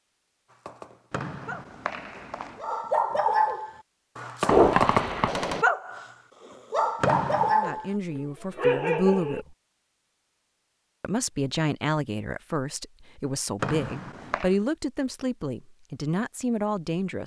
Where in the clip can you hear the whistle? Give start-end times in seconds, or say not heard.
1.1-2.6, 7.0-7.6, 13.6-14.6.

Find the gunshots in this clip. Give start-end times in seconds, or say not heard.
4.5-5.7.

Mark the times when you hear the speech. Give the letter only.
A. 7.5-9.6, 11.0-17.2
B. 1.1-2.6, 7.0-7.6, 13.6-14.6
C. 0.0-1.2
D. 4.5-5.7
A.